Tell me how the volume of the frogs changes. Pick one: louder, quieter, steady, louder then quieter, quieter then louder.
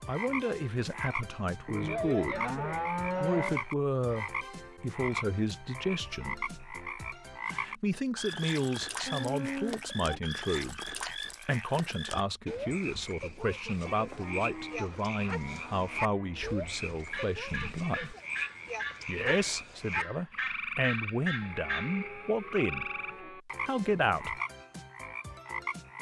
steady.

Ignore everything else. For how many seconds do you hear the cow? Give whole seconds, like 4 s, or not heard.
8 s.